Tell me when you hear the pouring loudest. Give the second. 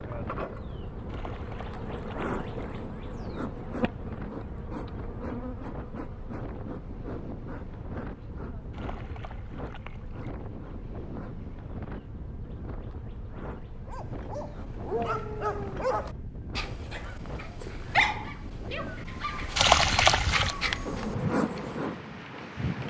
20 s.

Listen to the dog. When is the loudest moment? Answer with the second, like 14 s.
18 s.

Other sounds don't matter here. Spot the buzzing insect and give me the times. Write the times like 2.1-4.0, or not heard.
0.0-16.2, 20.9-22.8.